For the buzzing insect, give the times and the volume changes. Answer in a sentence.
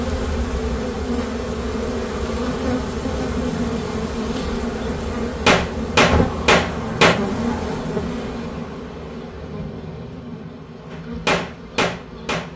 You can hear the buzzing insect from 0.0 to 12.5 s, getting quieter.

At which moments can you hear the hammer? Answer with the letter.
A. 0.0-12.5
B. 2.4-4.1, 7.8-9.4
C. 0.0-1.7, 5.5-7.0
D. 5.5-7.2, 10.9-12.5
D.